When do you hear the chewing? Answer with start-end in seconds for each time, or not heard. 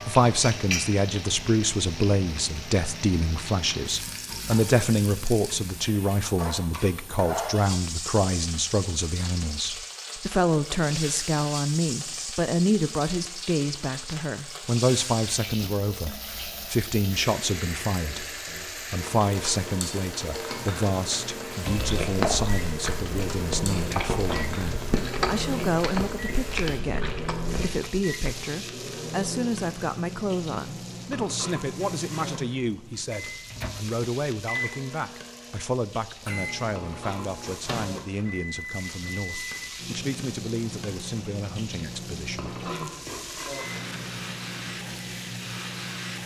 21.8-27.9.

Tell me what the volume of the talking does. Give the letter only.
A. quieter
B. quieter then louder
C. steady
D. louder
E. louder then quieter
A.